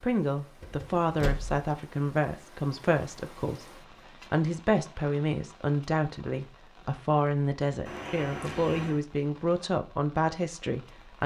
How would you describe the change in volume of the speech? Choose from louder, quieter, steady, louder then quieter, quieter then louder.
steady.